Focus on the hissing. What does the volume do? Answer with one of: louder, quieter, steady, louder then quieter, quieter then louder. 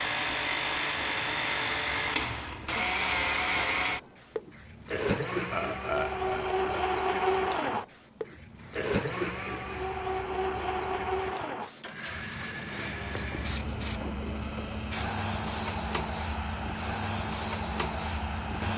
louder.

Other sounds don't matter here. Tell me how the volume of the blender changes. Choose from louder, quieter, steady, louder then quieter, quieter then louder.
quieter.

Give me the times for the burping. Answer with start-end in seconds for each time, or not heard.
5.5-6.8.